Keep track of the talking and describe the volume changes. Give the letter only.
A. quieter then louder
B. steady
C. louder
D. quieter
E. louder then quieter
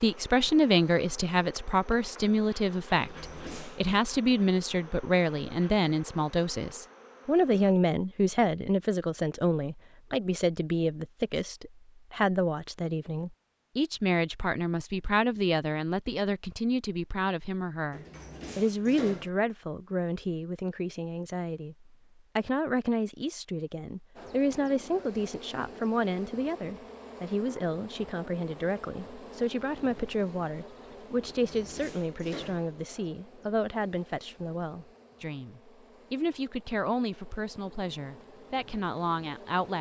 D.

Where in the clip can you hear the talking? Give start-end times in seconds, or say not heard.
0.0-21.8, 22.4-39.7.